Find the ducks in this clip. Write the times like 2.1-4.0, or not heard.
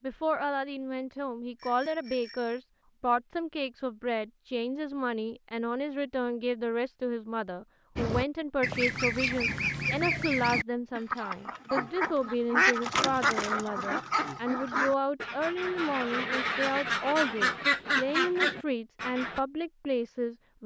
8.0-19.4.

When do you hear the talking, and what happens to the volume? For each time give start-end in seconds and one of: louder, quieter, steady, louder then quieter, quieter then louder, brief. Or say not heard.
0.0-20.6 steady.